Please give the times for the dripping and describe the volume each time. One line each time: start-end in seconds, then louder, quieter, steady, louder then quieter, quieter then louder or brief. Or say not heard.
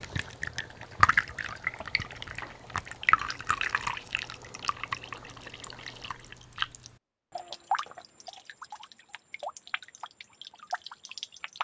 0.0-11.5 quieter.